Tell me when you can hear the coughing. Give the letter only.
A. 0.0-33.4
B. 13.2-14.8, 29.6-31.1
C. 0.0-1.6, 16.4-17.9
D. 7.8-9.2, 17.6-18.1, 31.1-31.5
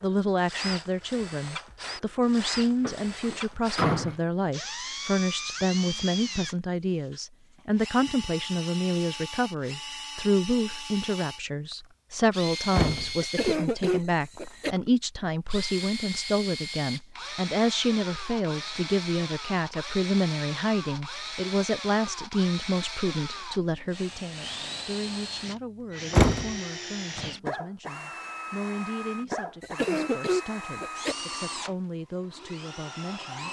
B.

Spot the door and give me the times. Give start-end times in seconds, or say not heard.
2.8-4.2, 12.7-13.2, 26.1-26.6.